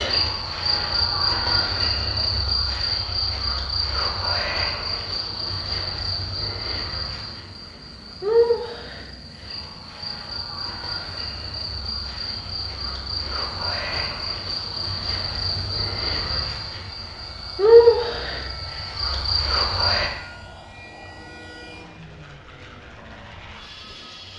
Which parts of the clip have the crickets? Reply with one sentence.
The crickets can be heard from 0.0 to 20.1 s.